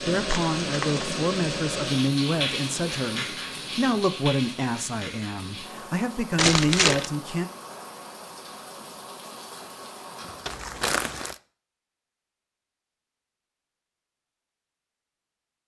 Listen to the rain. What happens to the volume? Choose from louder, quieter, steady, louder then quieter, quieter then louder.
quieter.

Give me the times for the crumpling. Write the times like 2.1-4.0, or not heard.
0.2-1.1, 6.3-7.1, 10.4-11.4.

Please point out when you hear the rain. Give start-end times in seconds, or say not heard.
0.0-10.7.